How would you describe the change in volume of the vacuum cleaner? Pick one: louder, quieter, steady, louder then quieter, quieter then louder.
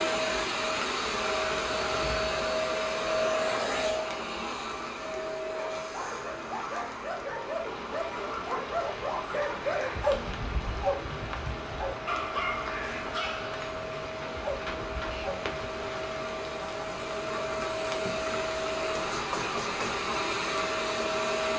quieter then louder.